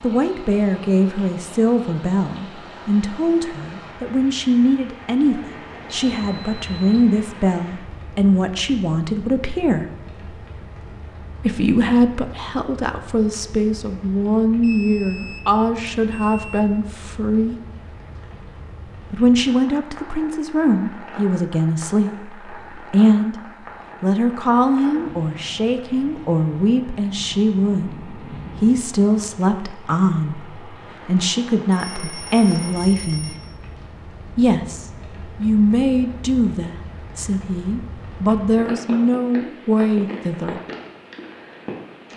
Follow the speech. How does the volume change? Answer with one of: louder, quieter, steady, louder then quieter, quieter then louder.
steady.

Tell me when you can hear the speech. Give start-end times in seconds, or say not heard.
0.0-9.8, 11.4-17.6, 19.1-23.4, 24.0-33.3, 34.4-40.6.